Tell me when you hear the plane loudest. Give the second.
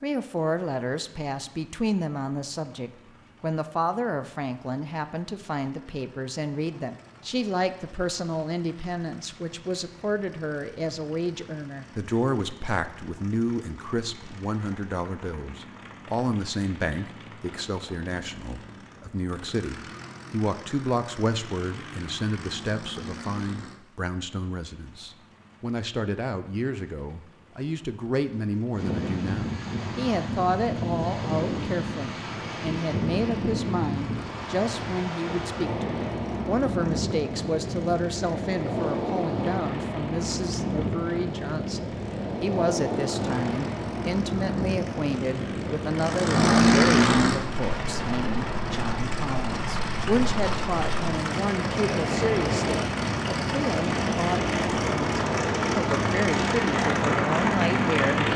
47 s.